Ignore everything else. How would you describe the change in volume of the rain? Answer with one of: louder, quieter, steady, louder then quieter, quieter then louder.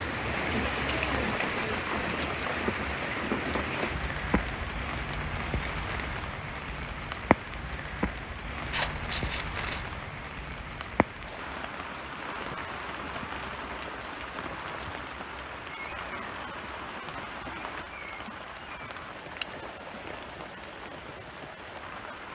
quieter.